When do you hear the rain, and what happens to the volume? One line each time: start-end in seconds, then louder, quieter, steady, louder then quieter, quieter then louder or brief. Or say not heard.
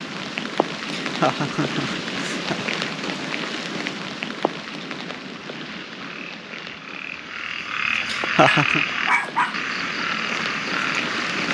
0.0-11.4 quieter then louder.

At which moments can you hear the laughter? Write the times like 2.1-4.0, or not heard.
0.9-2.8, 8.1-8.8.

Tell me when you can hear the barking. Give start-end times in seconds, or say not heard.
8.4-10.1.